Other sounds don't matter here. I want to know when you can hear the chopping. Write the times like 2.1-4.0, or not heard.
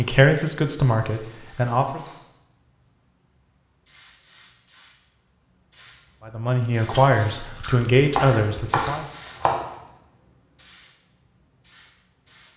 8.1-9.6.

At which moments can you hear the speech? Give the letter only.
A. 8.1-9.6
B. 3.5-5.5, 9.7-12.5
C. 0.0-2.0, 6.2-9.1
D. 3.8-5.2
C.